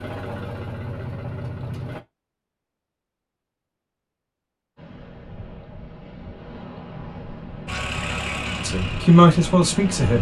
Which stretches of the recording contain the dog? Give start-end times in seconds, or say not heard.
not heard.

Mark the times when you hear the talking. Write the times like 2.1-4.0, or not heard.
8.6-10.1.